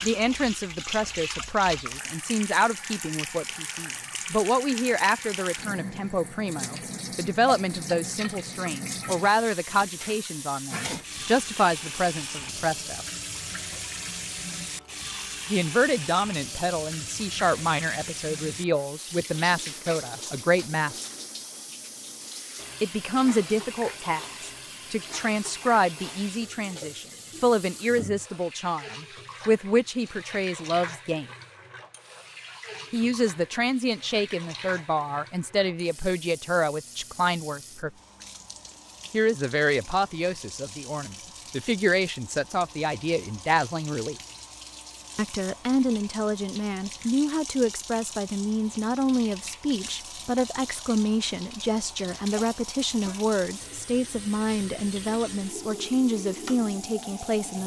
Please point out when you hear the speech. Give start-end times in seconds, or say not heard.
0.0-13.1, 15.4-21.0, 22.8-31.2, 32.9-37.9, 39.1-44.1, 45.1-57.6.